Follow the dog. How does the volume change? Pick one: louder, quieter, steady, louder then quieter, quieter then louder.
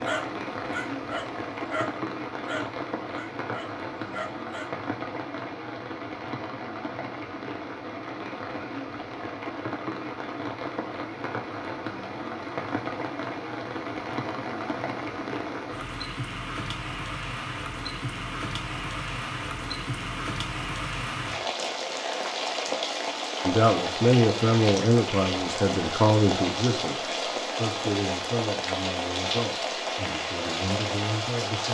quieter then louder.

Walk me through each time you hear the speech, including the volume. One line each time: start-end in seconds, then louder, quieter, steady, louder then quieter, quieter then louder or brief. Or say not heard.
23.4-31.6 quieter.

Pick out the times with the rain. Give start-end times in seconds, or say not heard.
0.0-31.6.